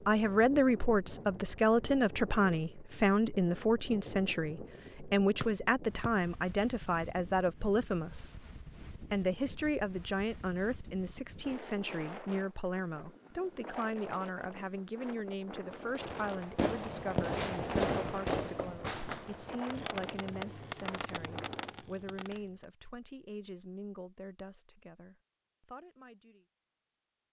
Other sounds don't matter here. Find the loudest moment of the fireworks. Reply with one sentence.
The volume of the fireworks peaks at 18 seconds.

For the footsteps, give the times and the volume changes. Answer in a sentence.
You can't hear the footsteps here.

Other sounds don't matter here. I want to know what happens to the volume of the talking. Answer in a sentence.
The volume of the talking goes down.